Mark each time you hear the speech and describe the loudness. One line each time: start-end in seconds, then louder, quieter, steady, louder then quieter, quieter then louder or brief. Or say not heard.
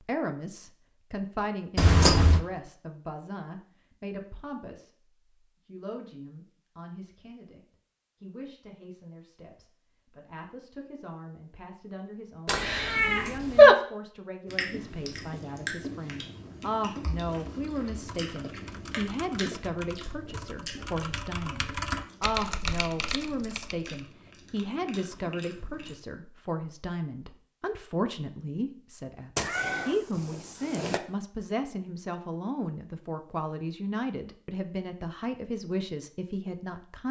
0.0-7.6 quieter
8.2-37.0 louder.